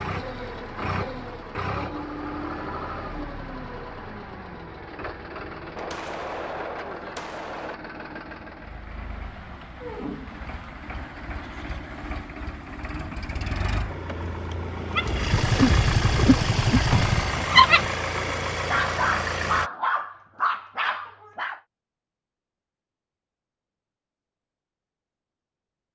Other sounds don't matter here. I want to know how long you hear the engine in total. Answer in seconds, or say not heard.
20 s.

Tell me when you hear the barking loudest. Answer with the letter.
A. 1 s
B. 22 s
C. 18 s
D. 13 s
C.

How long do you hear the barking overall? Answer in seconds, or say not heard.
7 s.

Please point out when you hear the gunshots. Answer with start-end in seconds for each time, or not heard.
5.8-7.8, 15.3-17.3.